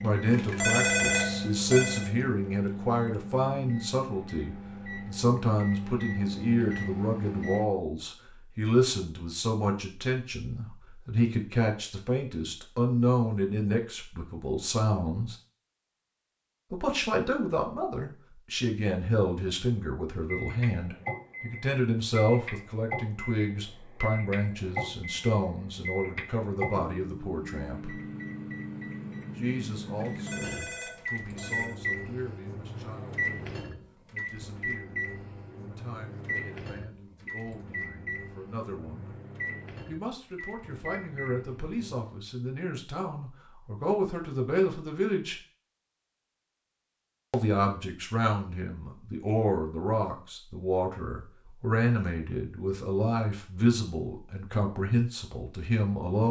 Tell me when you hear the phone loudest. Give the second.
1 s.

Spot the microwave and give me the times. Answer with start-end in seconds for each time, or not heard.
0.0-7.7, 20.2-42.0.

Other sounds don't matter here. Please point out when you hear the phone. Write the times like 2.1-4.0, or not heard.
0.3-2.1, 29.9-31.8.